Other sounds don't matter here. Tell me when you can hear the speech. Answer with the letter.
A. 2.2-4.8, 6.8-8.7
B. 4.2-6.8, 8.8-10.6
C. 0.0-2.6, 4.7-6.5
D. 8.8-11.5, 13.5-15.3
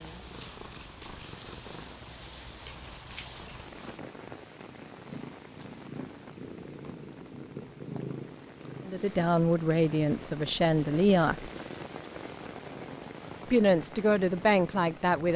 D.